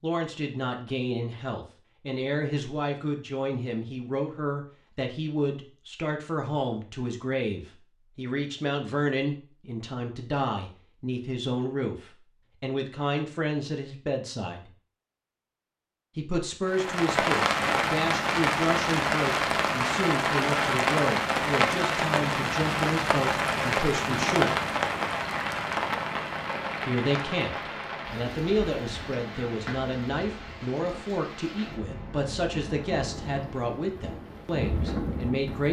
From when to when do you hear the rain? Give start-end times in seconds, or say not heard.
16.6-35.6.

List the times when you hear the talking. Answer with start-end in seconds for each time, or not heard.
0.0-14.7, 16.1-24.6, 26.9-35.6.